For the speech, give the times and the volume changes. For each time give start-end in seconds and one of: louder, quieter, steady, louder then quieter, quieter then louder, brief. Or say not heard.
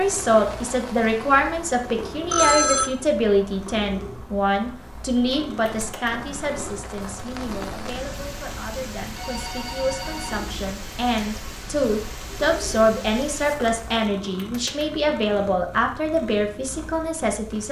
0.0-17.6 quieter then louder.